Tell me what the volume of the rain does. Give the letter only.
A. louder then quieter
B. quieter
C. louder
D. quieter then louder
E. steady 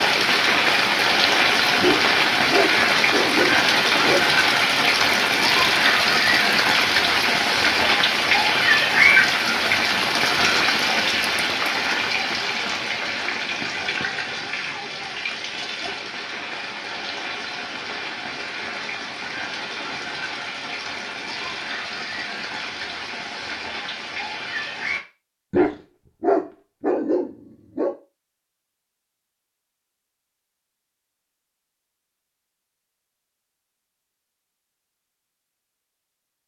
B.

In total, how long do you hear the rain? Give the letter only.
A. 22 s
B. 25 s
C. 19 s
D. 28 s
B.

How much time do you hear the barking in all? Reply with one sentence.
The barking can be heard for 5 seconds in total.